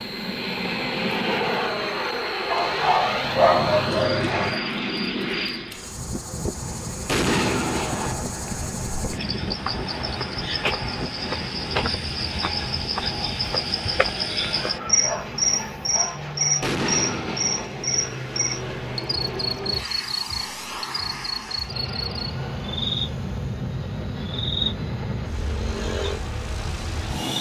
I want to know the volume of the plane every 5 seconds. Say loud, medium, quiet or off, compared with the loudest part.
loud, medium, medium, medium, medium, medium.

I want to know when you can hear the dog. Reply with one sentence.
The dog can be heard from 2.5 to 4.5 s and from 14.4 to 16.2 s.